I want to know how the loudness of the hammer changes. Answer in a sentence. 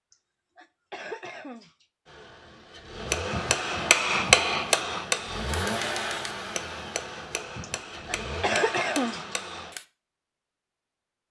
The volume of the hammer goes down.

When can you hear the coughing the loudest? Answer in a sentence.
The loudest moment of the coughing is at 9 seconds.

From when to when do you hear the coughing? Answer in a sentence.
You can hear the coughing from 0.1 to 1.9 s and from 7.6 to 9.3 s.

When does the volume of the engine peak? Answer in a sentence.
The volume of the engine peaks at 6 seconds.